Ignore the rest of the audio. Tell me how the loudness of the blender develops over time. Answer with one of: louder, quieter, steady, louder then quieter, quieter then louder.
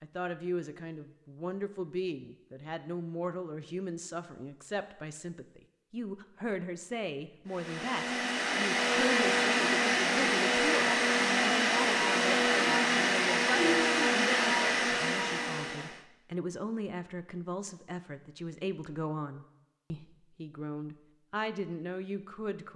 steady.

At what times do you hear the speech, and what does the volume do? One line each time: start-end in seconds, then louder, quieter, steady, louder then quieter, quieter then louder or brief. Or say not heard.
0.0-22.7 steady.